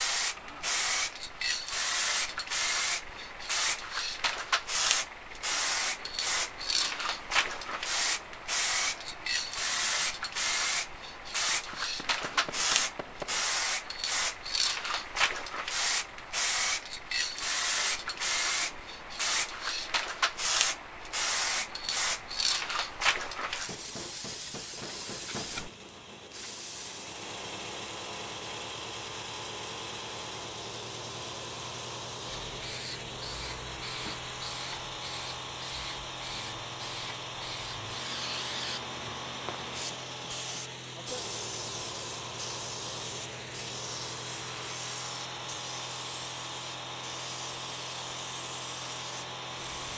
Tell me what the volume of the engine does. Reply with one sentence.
The loudness of the engine goes up.